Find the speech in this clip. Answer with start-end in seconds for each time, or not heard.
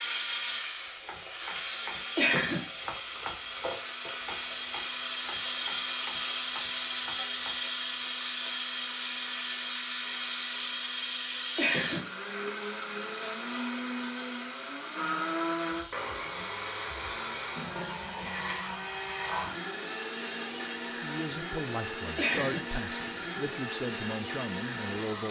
20.8-25.2.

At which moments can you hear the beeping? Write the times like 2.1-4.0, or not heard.
not heard.